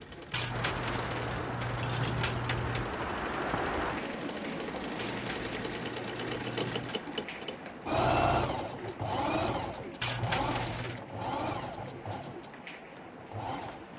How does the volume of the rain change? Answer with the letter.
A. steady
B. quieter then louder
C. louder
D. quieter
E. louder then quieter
D.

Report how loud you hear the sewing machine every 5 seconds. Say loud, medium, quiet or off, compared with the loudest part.
medium, loud, medium.